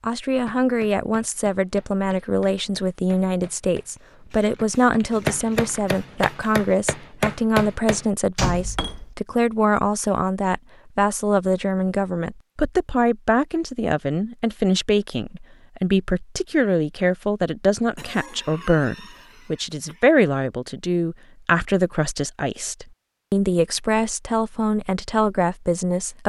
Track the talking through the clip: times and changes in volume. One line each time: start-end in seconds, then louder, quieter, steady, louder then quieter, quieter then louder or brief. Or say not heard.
0.0-26.2 steady.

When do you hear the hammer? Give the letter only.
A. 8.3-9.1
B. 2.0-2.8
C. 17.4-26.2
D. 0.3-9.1
D.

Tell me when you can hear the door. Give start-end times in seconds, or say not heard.
8.3-9.1.